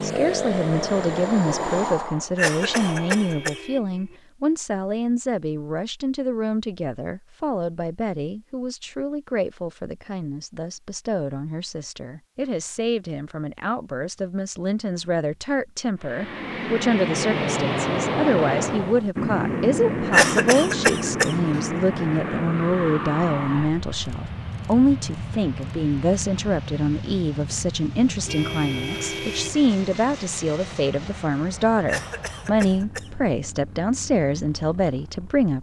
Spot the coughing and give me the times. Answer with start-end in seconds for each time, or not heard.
2.4-3.6, 20.1-21.4, 31.9-33.1.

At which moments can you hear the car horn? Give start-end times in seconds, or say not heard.
2.5-4.2, 28.2-29.6.